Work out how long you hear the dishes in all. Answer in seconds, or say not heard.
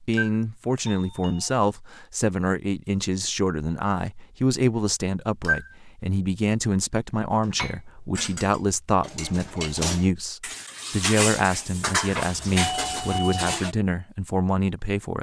6 s.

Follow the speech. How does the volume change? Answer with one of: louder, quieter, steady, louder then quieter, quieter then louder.
steady.